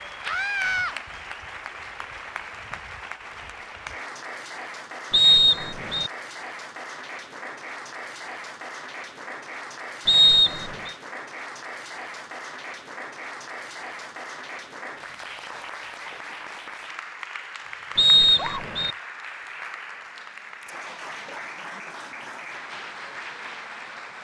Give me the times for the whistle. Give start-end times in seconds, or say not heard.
5.1-6.1, 10.1-10.9, 17.9-18.9.